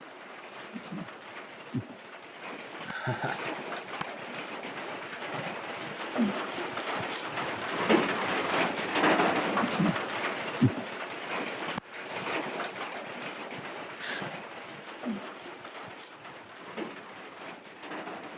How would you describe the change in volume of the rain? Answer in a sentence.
The volume of the rain goes up, then down.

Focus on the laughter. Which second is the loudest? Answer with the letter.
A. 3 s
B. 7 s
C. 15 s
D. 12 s
A.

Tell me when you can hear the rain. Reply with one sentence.
You can hear the rain from 0.0 to 18.3 s.